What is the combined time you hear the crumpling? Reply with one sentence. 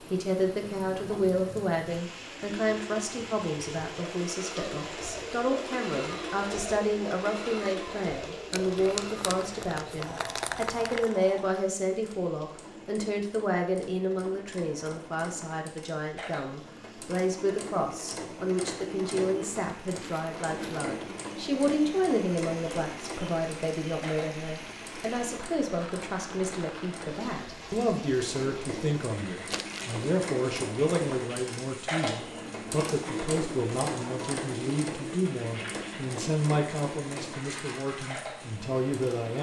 The crumpling can be heard for 4 seconds in total.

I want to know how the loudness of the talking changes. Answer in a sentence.
The loudness of the talking stays about the same.